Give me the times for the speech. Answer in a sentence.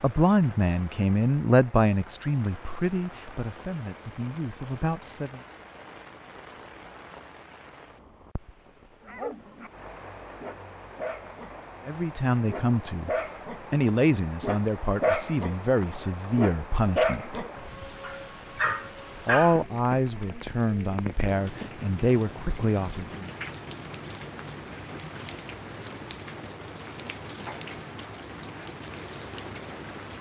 You can hear the speech from 0.0 to 5.4 s, from 11.8 to 17.4 s and from 19.2 to 23.3 s.